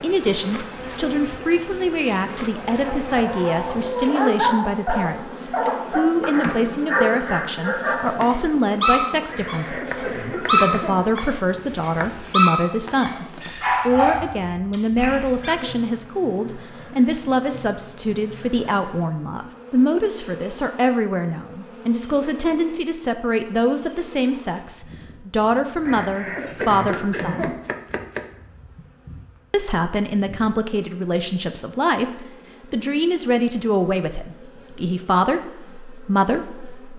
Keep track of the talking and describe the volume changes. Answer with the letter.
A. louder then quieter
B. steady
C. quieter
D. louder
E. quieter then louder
B.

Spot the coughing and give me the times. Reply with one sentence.
The coughing can be heard from 9.2 to 10.9 s and from 25.9 to 27.6 s.